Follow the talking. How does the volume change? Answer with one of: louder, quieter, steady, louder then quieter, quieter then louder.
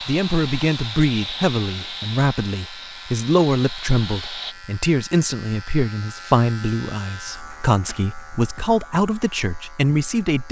steady.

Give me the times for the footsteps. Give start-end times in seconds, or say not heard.
not heard.